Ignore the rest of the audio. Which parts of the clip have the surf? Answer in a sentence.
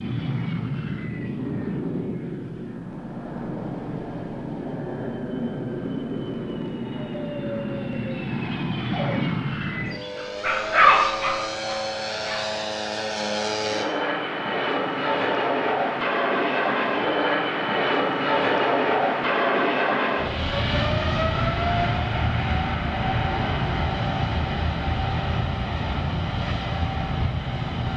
You can't hear the surf here.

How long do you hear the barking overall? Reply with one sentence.
You can hear the barking for 2 seconds altogether.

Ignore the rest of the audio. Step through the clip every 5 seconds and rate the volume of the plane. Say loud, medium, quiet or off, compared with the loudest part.
medium, medium, medium, loud, loud, medium.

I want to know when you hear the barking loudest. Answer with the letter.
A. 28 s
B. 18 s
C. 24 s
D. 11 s
D.